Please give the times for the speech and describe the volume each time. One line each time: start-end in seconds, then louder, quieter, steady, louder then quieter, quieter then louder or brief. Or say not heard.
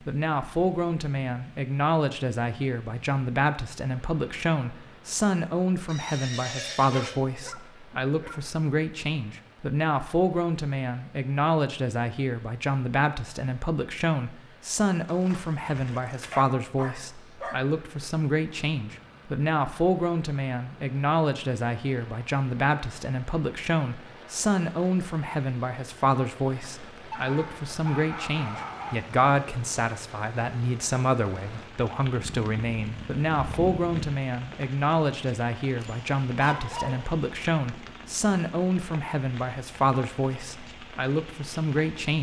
0.0-42.1 steady.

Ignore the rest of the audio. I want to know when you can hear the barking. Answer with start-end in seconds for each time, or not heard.
6.9-8.4, 15.7-17.6, 27.1-29.1, 35.8-37.2.